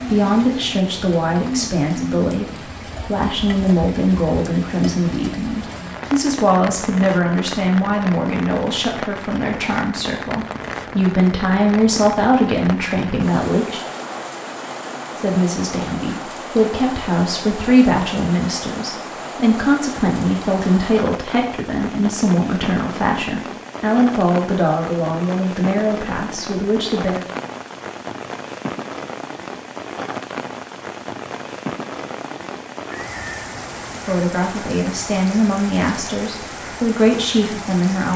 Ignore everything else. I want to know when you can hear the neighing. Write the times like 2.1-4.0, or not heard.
32.9-33.5.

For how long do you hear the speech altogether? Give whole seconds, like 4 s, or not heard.
30 s.